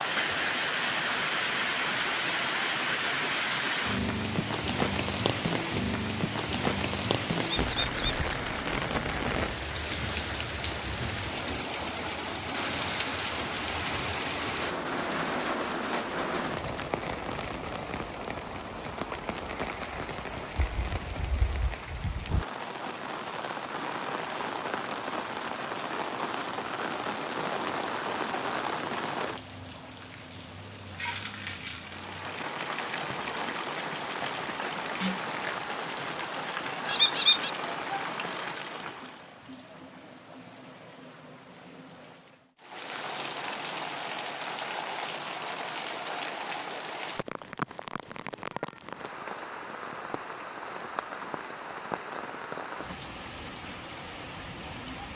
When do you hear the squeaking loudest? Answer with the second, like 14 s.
37 s.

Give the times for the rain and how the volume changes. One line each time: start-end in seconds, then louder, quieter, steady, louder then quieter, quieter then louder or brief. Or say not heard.
0.0-55.1 quieter.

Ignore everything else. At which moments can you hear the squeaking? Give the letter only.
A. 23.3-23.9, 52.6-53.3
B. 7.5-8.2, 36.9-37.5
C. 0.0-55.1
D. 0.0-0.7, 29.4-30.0
B.